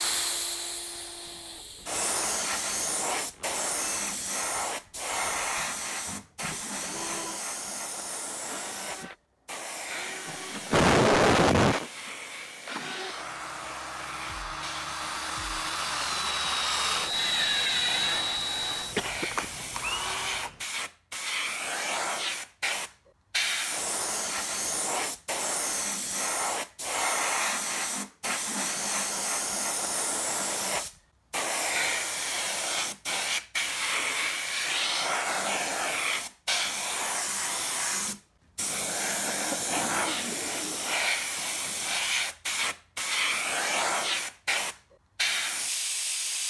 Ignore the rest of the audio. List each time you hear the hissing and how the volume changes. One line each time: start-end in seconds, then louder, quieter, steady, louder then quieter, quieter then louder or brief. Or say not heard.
0.0-46.4 quieter then louder.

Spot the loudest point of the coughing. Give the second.
11 s.